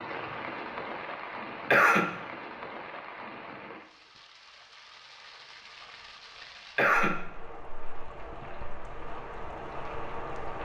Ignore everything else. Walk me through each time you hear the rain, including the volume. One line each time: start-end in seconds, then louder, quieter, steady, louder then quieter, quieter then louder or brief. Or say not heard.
0.0-10.6 quieter then louder.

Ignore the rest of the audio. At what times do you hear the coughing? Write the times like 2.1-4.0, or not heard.
1.7-2.1, 6.8-7.2.